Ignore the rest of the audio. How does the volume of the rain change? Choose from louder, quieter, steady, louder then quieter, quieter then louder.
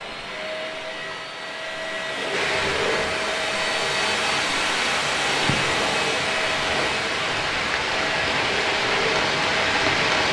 louder.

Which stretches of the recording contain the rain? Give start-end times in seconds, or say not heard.
2.3-10.2.